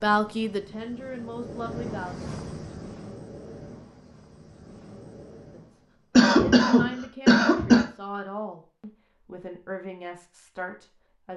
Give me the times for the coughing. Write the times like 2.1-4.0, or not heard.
6.2-7.8.